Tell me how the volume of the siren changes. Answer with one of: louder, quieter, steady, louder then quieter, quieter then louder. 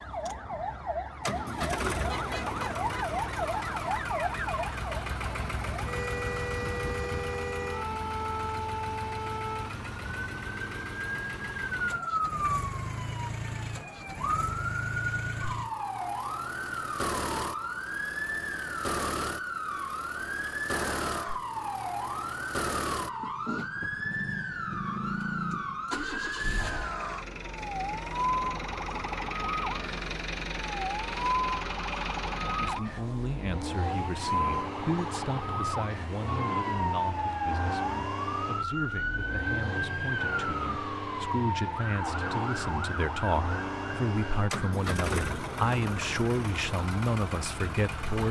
steady.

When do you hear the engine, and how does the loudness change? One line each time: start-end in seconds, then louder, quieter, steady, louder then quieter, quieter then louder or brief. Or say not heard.
0.2-48.2 steady.